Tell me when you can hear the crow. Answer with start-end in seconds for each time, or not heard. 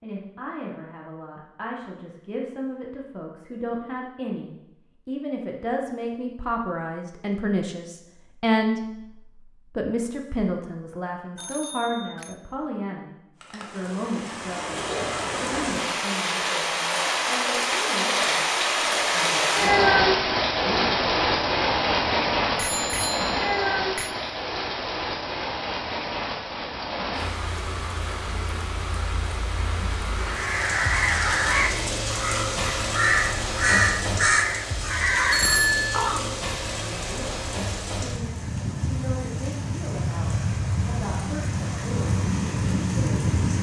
30.2-36.2.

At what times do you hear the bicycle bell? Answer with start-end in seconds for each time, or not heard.
11.3-12.3, 22.6-24.1, 35.3-36.0.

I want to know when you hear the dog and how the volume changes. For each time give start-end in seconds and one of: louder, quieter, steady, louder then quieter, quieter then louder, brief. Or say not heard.
not heard.